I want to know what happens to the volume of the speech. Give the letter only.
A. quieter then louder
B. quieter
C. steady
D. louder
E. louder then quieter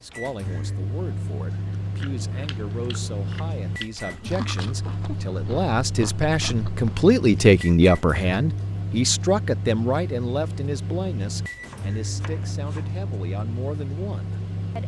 E.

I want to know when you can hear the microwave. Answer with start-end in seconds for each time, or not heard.
0.0-14.8.